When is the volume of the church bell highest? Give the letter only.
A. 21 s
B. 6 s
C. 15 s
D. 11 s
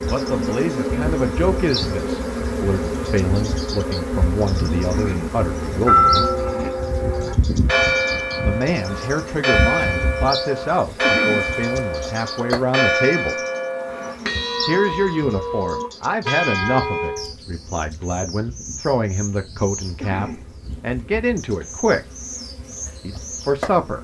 B.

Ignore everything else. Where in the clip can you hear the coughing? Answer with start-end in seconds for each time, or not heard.
4.9-5.4, 11.0-11.5, 20.0-20.4.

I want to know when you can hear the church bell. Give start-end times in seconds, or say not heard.
5.5-17.3.